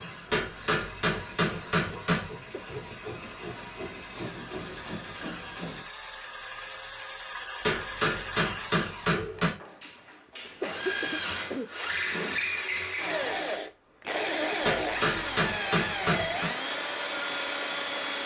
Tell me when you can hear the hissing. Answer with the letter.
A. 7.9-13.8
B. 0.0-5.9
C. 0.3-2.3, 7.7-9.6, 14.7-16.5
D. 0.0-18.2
B.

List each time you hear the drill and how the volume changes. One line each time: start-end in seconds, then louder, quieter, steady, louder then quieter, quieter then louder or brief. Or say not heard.
0.0-18.2 louder.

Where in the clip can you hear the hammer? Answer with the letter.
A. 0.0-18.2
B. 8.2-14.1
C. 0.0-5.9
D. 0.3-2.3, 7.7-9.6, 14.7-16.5
D.